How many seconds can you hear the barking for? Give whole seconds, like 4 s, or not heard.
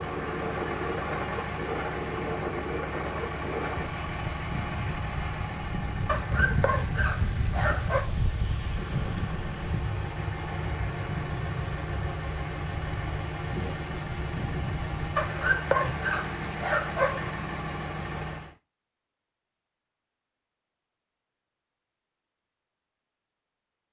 4 s.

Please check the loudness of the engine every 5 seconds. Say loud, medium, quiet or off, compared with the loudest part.
loud, medium, loud, loud, off.